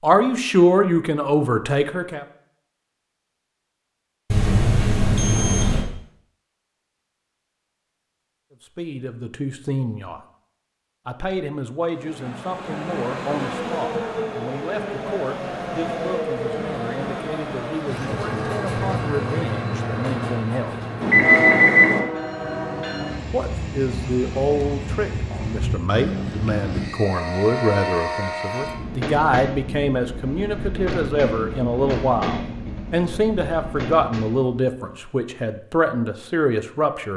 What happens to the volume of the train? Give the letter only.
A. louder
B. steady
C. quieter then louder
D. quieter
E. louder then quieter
B.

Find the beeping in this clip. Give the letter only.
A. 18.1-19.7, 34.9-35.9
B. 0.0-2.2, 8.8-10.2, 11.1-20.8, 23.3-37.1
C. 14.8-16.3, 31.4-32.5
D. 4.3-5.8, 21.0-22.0
D.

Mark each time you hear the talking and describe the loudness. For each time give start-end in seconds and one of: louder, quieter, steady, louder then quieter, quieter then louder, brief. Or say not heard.
0.0-2.2 brief
8.8-10.2 brief
11.1-20.8 steady
23.3-37.1 steady.